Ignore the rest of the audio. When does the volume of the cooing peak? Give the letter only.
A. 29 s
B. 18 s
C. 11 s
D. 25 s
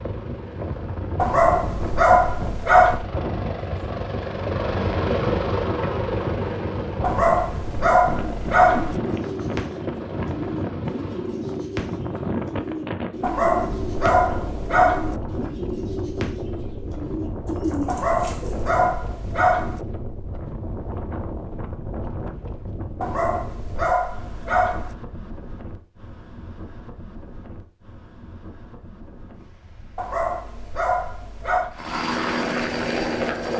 B.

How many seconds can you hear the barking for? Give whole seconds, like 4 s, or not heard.
12 s.